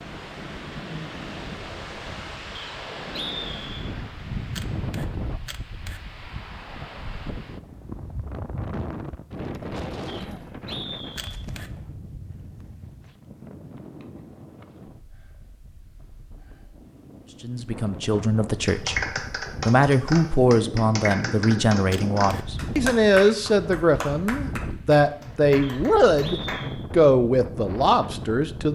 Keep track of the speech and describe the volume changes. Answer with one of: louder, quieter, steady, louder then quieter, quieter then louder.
steady.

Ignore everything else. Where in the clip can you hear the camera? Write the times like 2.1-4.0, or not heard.
4.5-6.0, 11.2-11.7, 21.9-22.4.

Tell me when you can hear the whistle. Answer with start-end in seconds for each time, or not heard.
2.5-3.9, 10.1-11.3, 25.6-26.9.